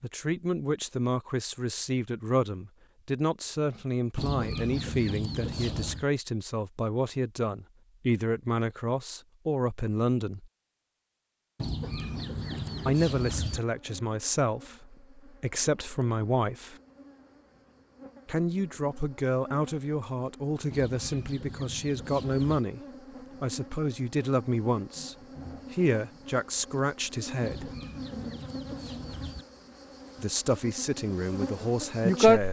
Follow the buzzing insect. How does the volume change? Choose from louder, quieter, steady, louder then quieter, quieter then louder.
louder.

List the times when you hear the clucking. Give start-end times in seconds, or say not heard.
4.2-6.0, 11.6-13.6, 20.7-22.6, 27.4-29.4.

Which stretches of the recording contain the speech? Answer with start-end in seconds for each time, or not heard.
0.0-10.5, 12.8-16.8, 18.2-22.8, 23.4-27.7, 30.1-32.4.